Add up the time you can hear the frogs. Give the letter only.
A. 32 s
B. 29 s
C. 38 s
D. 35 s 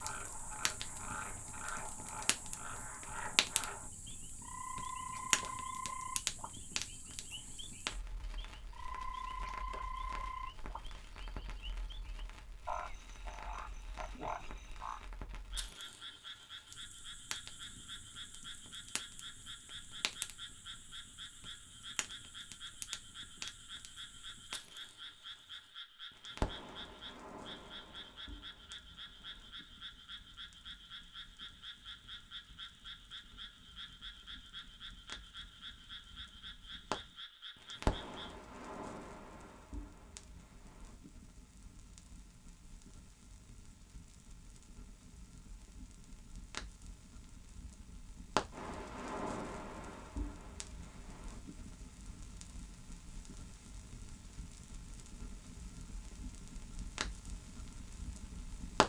C.